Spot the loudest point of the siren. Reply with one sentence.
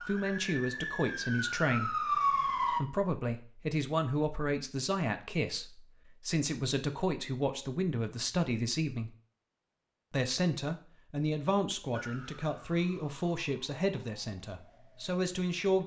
The loudest moment of the siren is at 2 seconds.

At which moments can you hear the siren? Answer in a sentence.
You can hear the siren from 0.0 to 2.8 s and from 11.9 to 15.8 s.